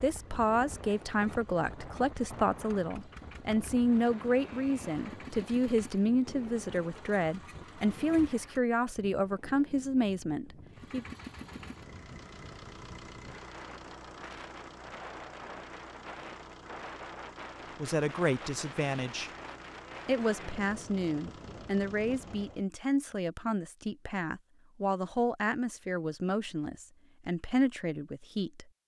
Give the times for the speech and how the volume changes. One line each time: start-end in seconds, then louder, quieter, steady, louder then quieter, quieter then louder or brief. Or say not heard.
0.0-11.1 steady
17.8-19.3 brief
20.1-28.7 steady.